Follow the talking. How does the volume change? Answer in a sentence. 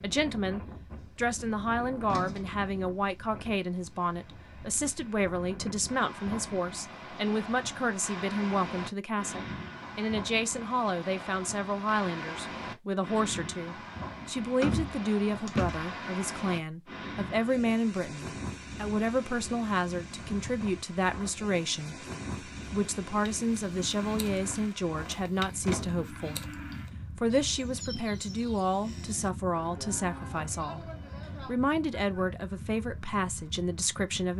The loudness of the talking stays about the same.